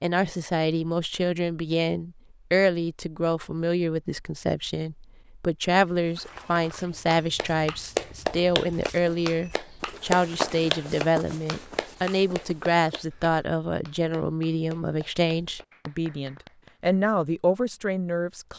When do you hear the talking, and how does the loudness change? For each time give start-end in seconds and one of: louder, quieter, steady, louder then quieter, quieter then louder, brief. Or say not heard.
0.0-18.5 steady.